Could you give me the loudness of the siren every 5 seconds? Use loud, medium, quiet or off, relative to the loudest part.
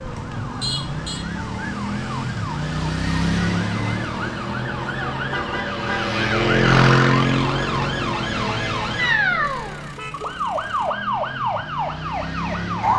medium, loud, loud.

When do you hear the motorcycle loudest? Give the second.
7 s.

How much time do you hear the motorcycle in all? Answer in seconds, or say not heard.
13 s.